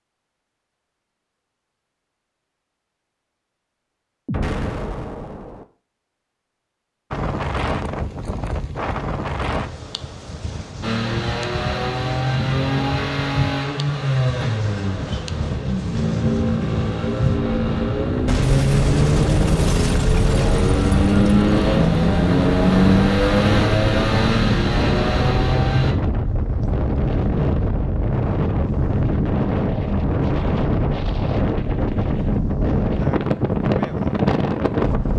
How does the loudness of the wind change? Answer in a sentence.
The loudness of the wind goes up.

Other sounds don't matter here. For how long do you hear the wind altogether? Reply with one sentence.
The wind can be heard for 28 seconds in total.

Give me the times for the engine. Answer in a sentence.
The engine can be heard from 10.8 to 25.9 s.